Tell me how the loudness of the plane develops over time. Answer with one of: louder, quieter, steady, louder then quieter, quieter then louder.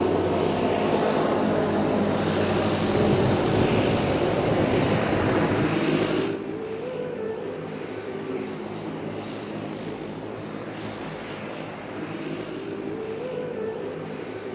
quieter.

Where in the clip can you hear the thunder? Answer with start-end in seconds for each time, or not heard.
2.9-5.7.